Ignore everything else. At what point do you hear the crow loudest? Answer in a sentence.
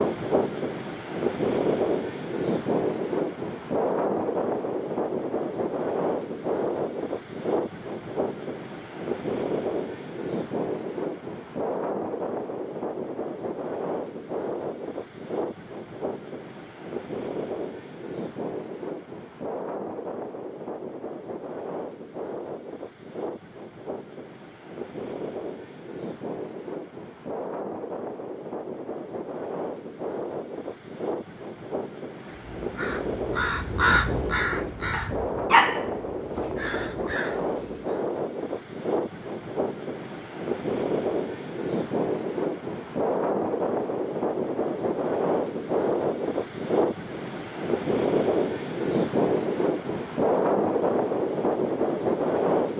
The loudest moment of the crow is at 34 seconds.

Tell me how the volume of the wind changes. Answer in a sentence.
The loudness of the wind goes down, then up.